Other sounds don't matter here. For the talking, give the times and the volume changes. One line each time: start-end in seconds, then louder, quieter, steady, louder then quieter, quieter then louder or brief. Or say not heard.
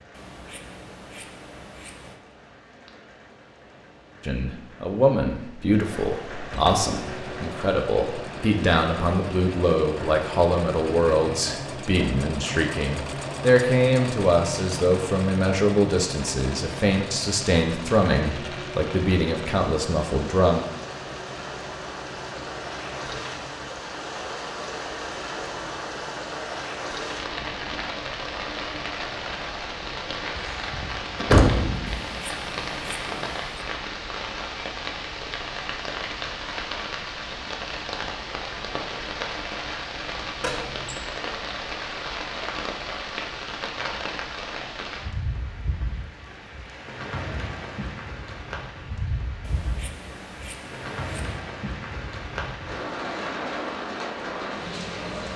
4.2-20.6 steady.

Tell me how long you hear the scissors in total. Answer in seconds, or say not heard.
6 s.